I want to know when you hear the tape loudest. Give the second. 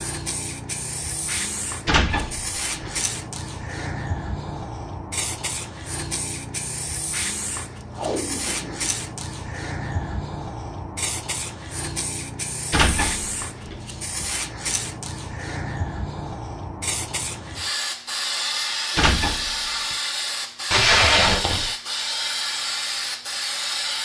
21 s.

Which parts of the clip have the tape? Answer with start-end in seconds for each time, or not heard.
7.9-8.9, 20.7-21.8.